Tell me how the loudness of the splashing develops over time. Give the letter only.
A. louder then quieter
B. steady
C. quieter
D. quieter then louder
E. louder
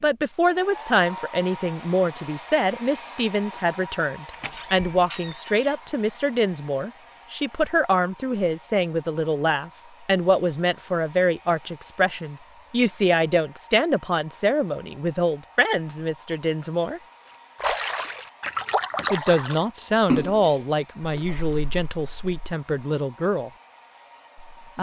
A.